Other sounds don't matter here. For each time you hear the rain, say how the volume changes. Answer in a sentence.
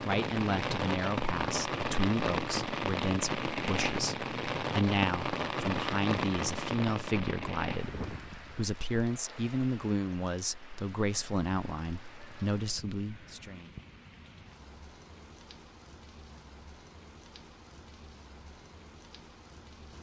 The rain can be heard from 0.0 to 19.9 s, getting quieter.